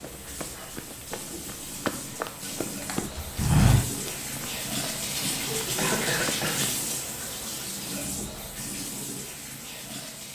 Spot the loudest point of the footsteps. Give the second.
4 s.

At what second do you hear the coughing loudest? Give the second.
6 s.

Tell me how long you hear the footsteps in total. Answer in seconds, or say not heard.
7 s.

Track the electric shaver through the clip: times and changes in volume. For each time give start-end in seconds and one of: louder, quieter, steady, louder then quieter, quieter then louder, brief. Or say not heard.
not heard.